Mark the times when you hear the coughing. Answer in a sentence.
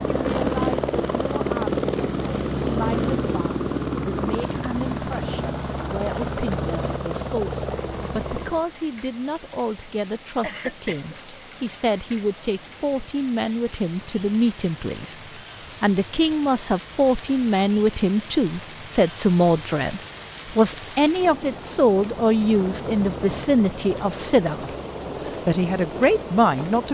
You can hear the coughing from 10.4 to 11.2 s.